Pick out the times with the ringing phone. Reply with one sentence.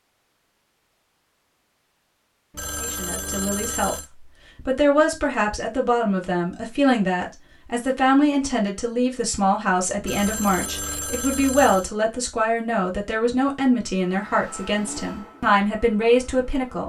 You can hear the ringing phone from 2.5 to 4.1 s and from 10.0 to 11.9 s.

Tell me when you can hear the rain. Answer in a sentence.
You can't hear the rain here.